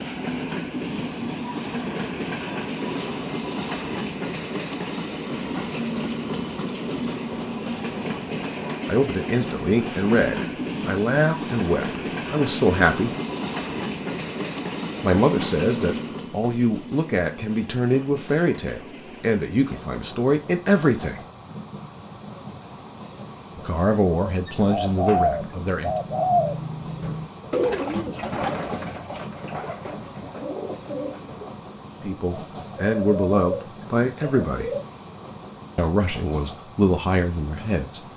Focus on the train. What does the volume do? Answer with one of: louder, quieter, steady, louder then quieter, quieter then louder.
quieter.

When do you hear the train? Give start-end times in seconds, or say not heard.
0.0-38.1.